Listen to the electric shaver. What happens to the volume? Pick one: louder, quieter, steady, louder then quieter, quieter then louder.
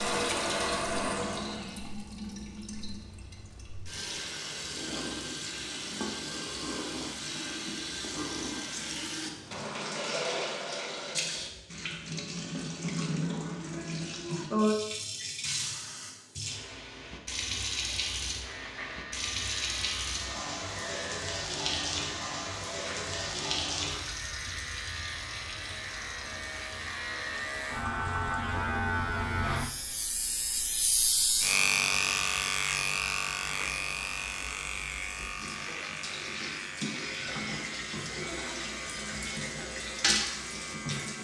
louder then quieter.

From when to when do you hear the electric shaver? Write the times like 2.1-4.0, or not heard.
18.4-41.1.